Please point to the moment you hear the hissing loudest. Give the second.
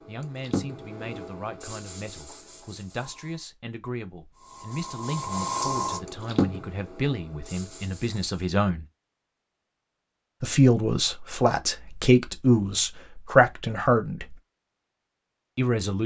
6 s.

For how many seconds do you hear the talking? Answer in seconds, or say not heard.
13 s.